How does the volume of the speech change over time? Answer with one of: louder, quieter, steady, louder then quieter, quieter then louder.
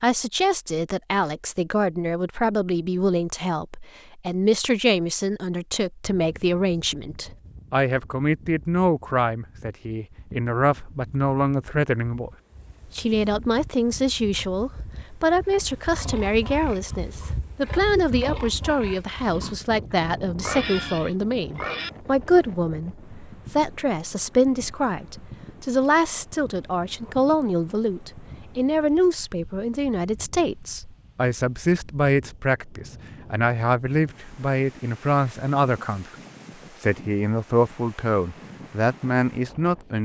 steady.